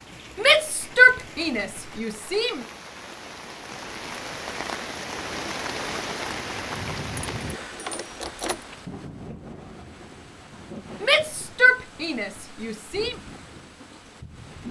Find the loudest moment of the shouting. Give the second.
1 s.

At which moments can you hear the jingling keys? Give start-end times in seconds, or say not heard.
7.3-8.7.